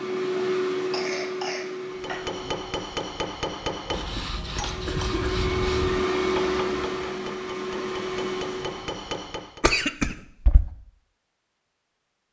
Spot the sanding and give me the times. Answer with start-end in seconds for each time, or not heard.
3.9-5.9.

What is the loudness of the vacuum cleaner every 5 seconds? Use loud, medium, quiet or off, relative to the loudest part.
loud, loud, off.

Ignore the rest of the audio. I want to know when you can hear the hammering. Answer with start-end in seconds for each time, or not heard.
1.9-9.7.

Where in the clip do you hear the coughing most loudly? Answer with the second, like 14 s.
10 s.